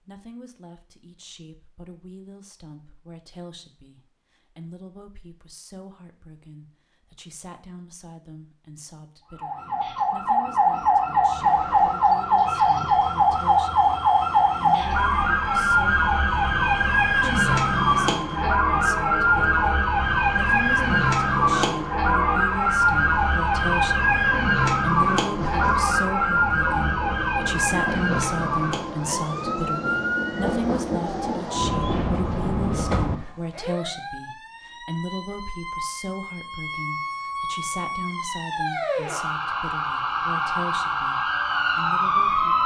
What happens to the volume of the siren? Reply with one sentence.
The loudness of the siren goes down, then up.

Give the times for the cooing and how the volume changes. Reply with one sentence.
The cooing can't be heard in this clip.